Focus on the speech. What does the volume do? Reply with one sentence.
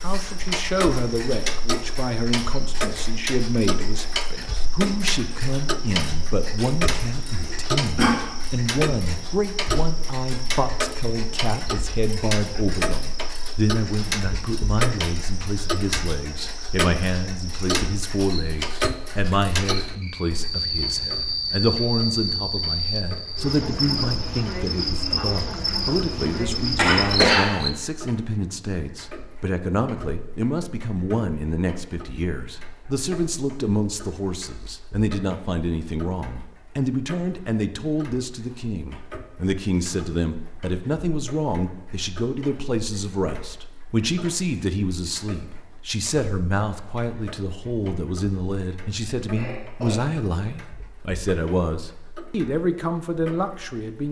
The loudness of the speech stays about the same.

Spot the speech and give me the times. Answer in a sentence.
You can hear the speech from 0.0 to 54.0 s.